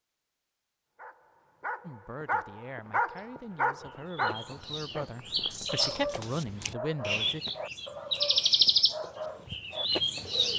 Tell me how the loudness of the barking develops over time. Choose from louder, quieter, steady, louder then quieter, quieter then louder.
quieter.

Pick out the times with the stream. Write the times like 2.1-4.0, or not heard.
not heard.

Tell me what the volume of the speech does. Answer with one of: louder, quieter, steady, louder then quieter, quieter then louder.
louder.